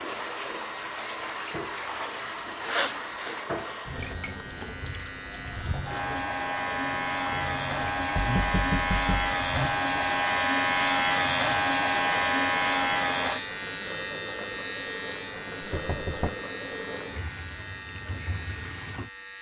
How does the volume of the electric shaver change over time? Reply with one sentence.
The volume of the electric shaver goes up, then down.